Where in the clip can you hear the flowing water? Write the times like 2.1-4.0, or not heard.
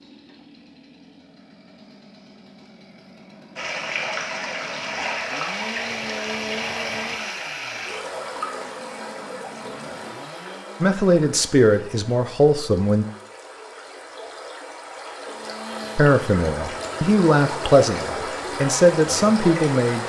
3.5-20.0.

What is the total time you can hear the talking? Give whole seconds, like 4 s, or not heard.
6 s.